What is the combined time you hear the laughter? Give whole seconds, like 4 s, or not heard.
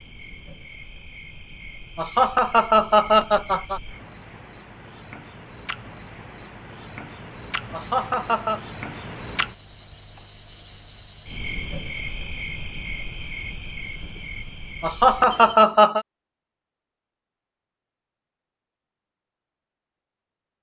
4 s.